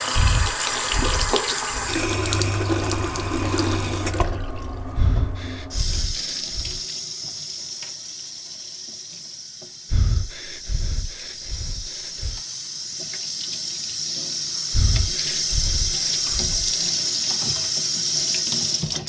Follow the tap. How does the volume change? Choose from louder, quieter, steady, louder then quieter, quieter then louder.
quieter then louder.